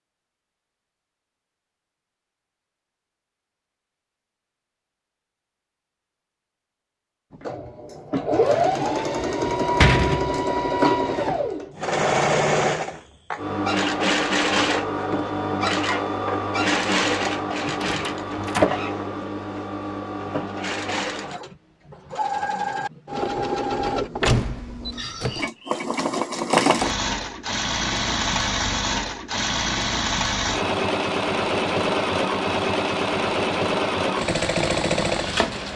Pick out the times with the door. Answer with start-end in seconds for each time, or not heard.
8.4-10.4, 17.6-18.7, 24.2-25.5.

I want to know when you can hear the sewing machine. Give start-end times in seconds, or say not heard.
7.3-35.7.